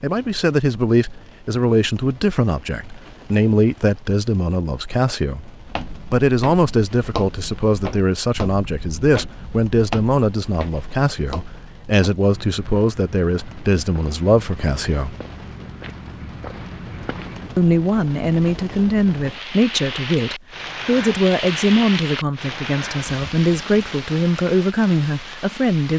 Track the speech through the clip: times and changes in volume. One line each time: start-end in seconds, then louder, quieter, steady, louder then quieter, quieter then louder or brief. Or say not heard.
0.0-15.2 steady
17.6-25.9 steady.